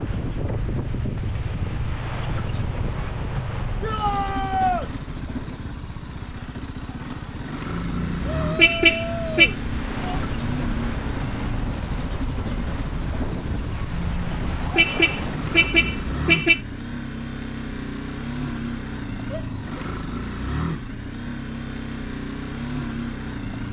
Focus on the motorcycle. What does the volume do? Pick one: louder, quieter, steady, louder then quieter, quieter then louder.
steady.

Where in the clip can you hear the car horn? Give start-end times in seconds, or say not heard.
7.7-9.6, 13.9-16.6.